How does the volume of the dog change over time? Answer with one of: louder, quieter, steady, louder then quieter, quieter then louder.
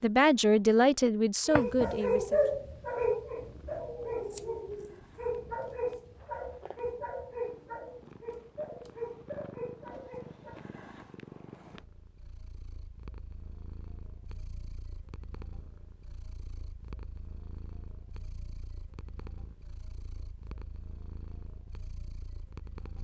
quieter.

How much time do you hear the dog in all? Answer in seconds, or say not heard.
9 s.